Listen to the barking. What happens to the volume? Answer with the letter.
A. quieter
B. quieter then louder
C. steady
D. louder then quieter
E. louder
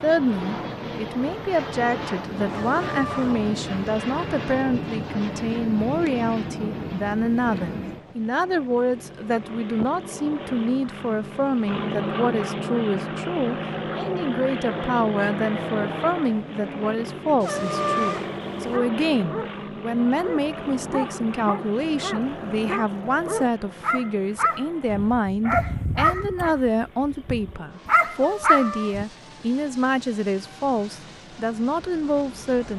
E.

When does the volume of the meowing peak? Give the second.
18 s.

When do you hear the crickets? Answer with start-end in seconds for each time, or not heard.
not heard.